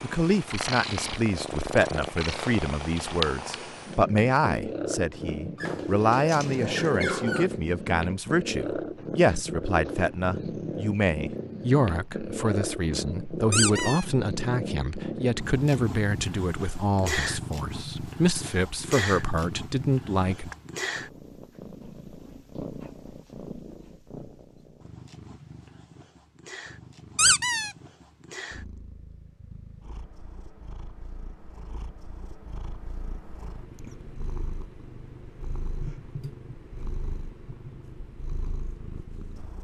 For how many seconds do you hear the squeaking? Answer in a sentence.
You can hear the squeaking for 3 seconds altogether.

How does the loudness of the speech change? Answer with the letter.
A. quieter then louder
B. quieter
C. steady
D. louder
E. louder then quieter
C.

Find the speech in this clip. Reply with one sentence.
The speech can be heard from 0.0 to 20.6 s.